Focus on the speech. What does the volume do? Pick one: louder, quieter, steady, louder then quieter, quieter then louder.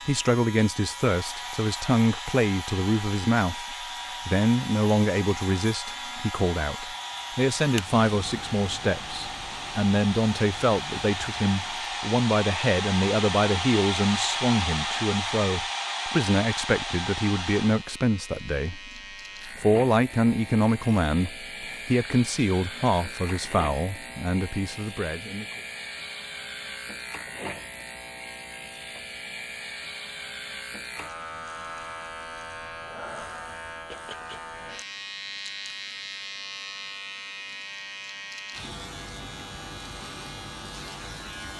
steady.